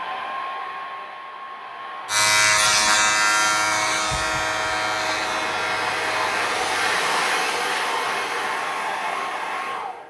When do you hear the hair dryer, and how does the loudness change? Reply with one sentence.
The hair dryer can be heard from 0.0 to 10.0 s, getting louder.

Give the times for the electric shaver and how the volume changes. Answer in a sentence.
You can hear the electric shaver from 2.0 to 7.0 s, getting quieter.